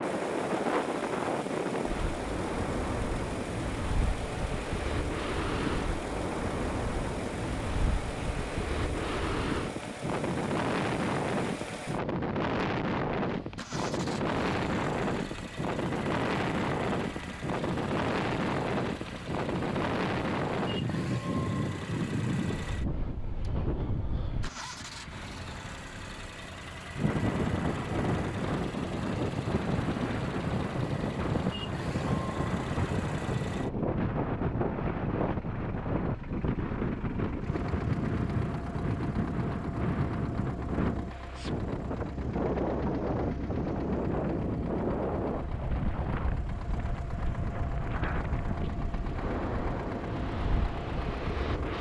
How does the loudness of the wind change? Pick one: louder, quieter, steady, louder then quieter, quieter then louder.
steady.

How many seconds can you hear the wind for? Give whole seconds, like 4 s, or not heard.
52 s.